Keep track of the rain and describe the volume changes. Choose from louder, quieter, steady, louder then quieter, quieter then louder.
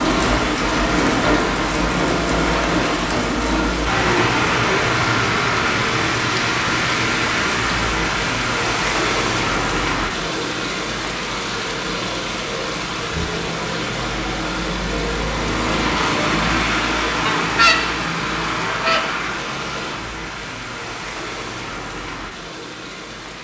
quieter.